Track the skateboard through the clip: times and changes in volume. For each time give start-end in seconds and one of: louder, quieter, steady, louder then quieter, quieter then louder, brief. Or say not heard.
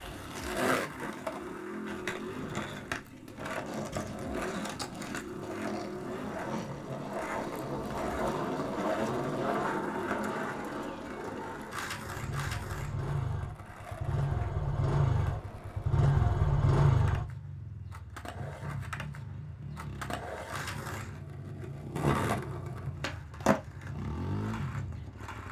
0.0-25.4 quieter then louder.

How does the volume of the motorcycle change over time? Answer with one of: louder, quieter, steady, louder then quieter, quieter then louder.
louder then quieter.